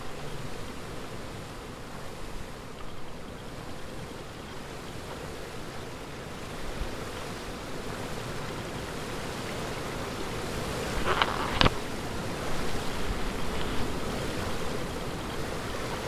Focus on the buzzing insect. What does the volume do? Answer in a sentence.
The volume of the buzzing insect goes up, then down.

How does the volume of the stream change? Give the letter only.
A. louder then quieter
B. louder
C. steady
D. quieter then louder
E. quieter
B.